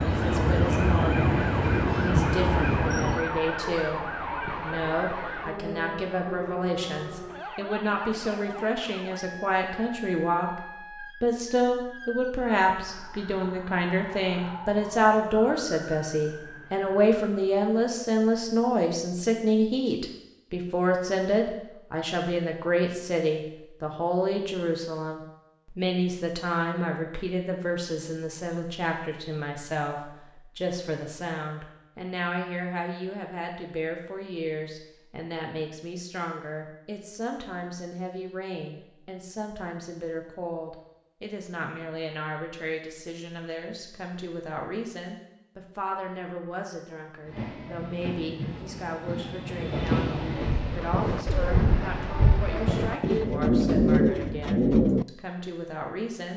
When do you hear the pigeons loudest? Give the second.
54 s.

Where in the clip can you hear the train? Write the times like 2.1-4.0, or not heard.
0.0-3.2, 47.2-53.2.